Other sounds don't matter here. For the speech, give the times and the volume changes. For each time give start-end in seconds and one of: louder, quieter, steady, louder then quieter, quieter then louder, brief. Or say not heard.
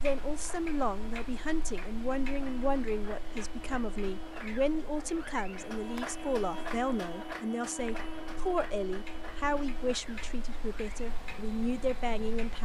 0.0-12.6 steady.